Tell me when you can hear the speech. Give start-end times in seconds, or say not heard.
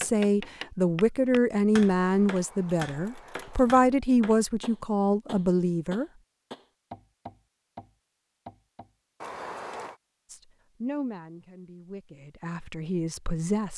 0.0-6.0, 10.3-13.7.